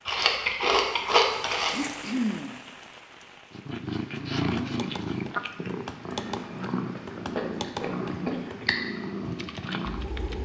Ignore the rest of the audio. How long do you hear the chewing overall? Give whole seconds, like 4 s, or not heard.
3 s.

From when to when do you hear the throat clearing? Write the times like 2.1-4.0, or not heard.
1.7-2.6, 8.1-8.9.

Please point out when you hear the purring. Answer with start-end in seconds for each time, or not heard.
3.5-10.4.